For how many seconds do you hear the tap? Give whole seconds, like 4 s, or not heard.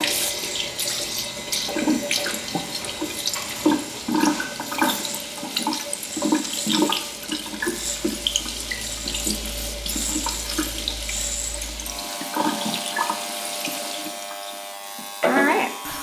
16 s.